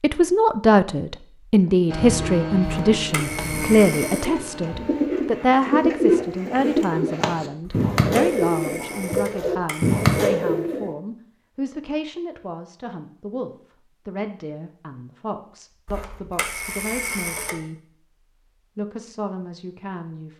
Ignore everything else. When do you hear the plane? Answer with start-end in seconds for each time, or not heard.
1.9-5.3.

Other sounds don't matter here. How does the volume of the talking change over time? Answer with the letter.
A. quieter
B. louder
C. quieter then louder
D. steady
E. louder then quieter
A.